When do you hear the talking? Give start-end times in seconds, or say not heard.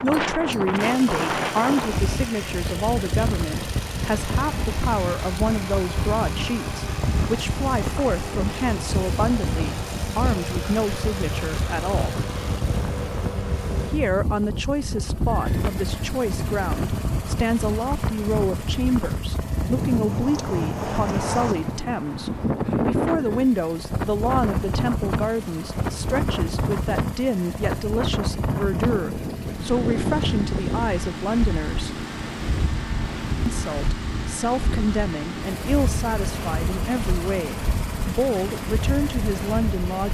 0.0-12.2, 13.8-32.0, 33.5-40.0.